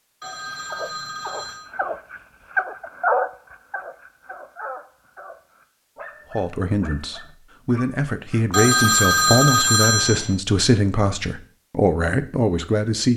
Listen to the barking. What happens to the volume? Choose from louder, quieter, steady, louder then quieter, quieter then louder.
louder then quieter.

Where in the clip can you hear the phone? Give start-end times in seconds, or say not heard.
0.2-1.7, 8.5-10.3.